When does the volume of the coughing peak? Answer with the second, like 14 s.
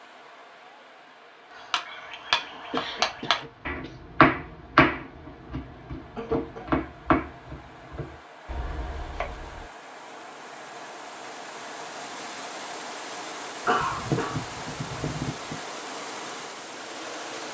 14 s.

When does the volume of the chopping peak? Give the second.
4 s.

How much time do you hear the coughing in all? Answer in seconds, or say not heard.
4 s.